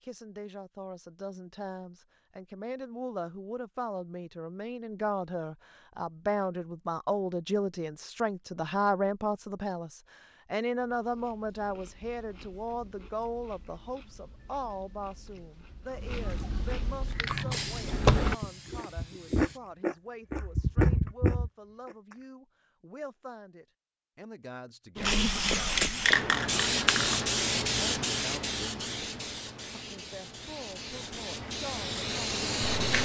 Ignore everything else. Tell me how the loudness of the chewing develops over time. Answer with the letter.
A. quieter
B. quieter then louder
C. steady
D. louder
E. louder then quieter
D.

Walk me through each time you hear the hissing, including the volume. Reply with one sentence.
The hissing can be heard briefly from 17.0 to 19.6 s; and from 24.9 to 33.0 s, getting quieter then louder.